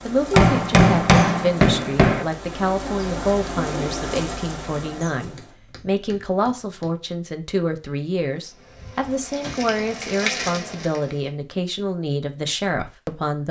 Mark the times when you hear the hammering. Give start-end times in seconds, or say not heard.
0.3-2.2, 5.3-6.9, 9.4-10.5.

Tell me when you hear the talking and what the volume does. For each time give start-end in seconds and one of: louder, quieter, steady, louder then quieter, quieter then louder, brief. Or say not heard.
0.0-13.4 steady.